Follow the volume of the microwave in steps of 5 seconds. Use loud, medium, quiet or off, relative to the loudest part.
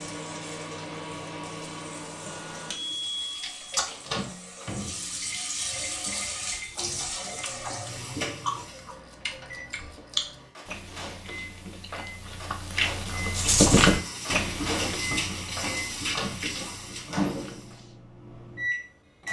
loud, medium, medium, loud.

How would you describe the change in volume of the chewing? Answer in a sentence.
The loudness of the chewing goes up, then down.